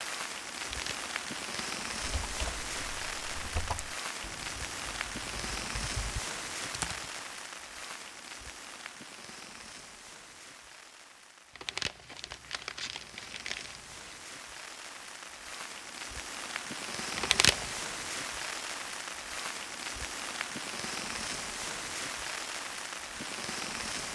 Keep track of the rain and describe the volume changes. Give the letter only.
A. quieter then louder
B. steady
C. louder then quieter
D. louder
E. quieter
A.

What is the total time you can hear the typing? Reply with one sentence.
You can hear the typing for 5 seconds altogether.